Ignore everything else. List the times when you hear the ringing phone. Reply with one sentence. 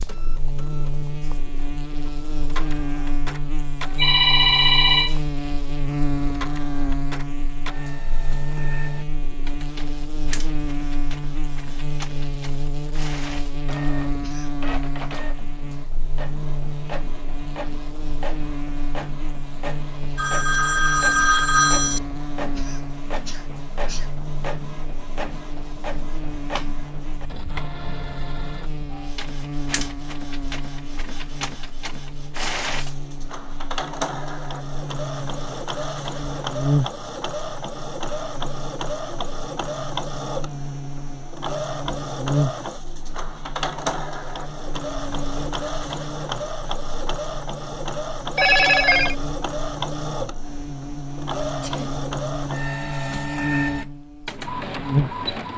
You can hear the ringing phone from 4.0 to 5.2 s, from 20.1 to 22.0 s and from 48.4 to 49.1 s.